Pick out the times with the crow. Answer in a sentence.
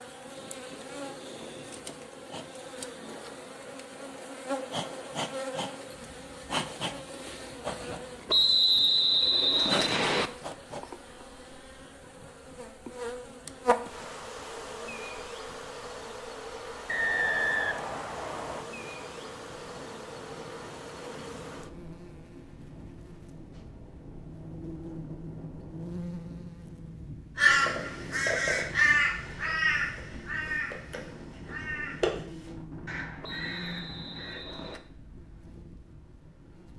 The crow can be heard from 27.4 to 34.5 s.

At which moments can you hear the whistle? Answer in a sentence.
You can hear the whistle from 8.2 to 10.3 s, from 16.9 to 18.6 s and from 33.2 to 34.8 s.